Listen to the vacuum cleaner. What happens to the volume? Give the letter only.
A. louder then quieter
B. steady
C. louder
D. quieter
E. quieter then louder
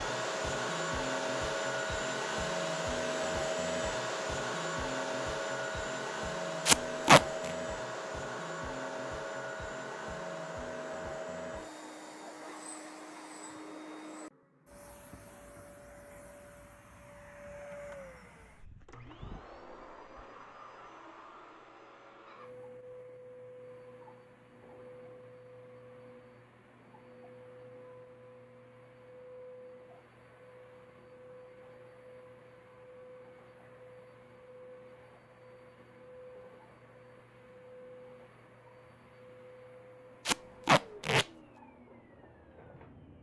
D.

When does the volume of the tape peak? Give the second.
7 s.